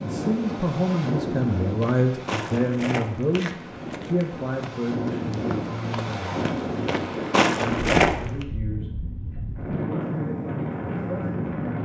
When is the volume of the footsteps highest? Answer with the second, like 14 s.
8 s.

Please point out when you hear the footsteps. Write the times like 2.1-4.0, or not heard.
1.6-8.4.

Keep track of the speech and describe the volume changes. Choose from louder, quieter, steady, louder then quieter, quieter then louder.
quieter.